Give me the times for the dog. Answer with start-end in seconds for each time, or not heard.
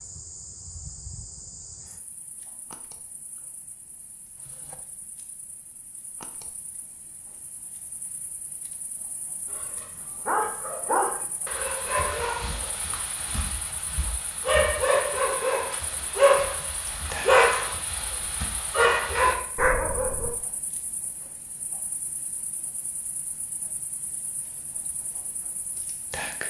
9.5-20.3.